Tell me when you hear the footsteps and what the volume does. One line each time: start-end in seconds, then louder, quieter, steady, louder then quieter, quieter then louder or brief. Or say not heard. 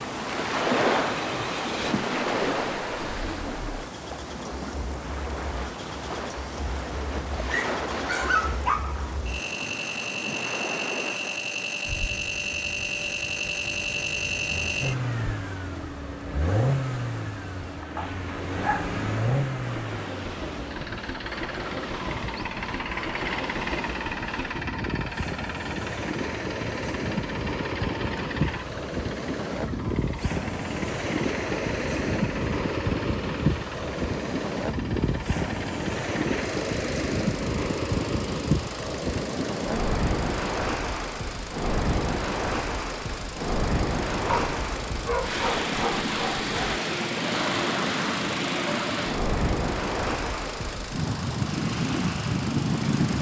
not heard.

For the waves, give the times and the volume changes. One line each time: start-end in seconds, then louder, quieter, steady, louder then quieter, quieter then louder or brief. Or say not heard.
0.0-53.1 quieter then louder.